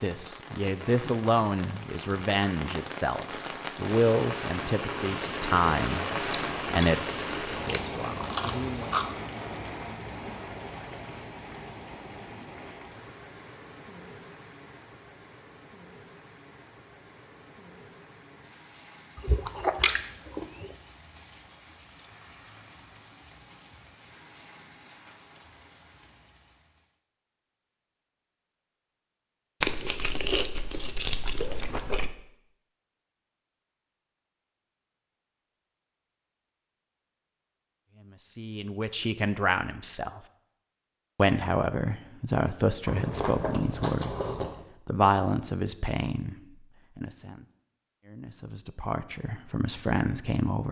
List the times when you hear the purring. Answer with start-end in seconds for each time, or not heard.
not heard.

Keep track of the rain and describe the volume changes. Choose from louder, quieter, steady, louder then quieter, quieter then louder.
quieter.